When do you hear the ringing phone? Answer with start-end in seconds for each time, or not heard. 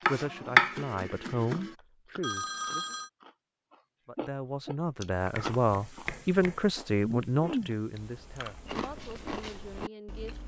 2.2-3.1.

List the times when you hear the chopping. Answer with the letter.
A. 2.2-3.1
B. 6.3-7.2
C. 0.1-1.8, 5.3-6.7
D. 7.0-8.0
C.